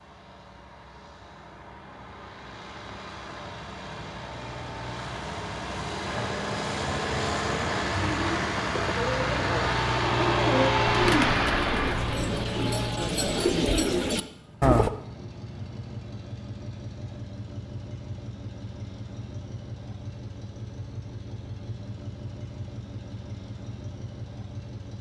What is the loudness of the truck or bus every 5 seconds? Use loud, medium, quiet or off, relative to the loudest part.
quiet, loud, loud, quiet, quiet.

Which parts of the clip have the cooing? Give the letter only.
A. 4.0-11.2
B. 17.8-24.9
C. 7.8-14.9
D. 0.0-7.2
C.